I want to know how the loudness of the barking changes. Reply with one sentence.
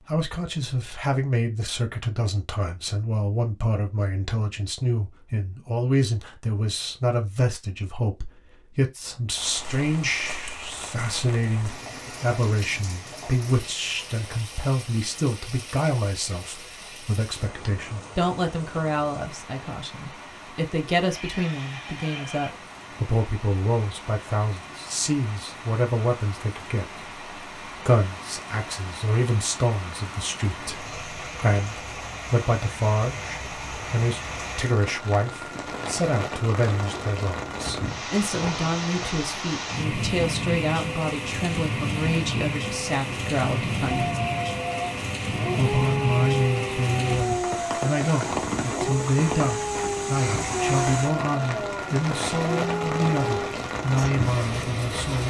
The loudness of the barking stays about the same.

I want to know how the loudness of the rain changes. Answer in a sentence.
The volume of the rain goes up.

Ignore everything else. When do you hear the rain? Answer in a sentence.
You can hear the rain from 9.3 to 55.2 s.